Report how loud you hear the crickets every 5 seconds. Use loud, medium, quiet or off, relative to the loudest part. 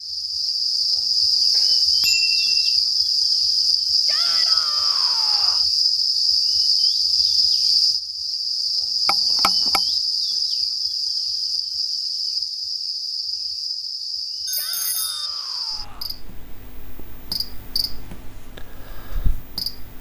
loud, loud, medium, quiet.